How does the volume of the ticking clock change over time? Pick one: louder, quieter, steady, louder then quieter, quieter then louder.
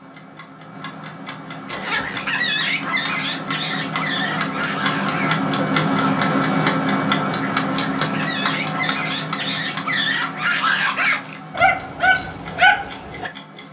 louder then quieter.